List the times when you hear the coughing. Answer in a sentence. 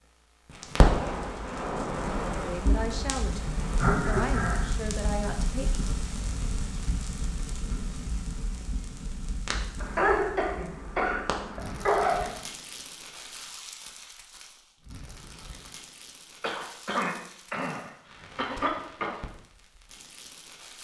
You can hear the coughing from 3.8 to 4.7 s, from 9.8 to 12.3 s and from 16.4 to 19.1 s.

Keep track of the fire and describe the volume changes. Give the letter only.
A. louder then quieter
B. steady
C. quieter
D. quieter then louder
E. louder
C.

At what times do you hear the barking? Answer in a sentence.
You can't hear the barking here.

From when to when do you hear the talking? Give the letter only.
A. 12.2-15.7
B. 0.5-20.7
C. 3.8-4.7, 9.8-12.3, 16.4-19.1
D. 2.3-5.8
D.